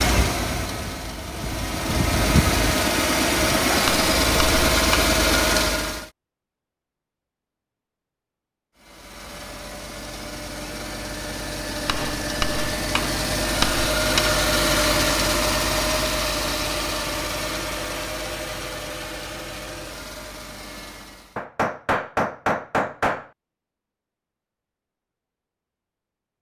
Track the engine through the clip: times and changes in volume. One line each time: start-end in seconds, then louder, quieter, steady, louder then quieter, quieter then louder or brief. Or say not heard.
0.0-6.1 louder
8.8-21.4 louder then quieter.